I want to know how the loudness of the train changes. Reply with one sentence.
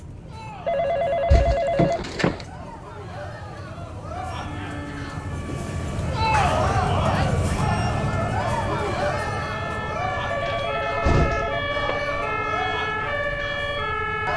The volume of the train goes up, then down.